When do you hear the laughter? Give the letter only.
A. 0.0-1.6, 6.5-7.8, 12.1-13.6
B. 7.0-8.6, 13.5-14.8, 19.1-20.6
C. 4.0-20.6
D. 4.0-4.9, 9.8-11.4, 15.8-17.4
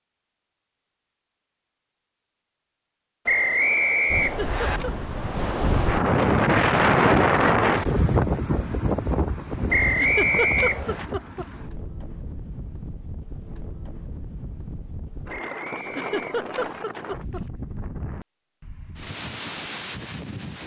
D.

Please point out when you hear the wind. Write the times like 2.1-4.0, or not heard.
4.0-20.6.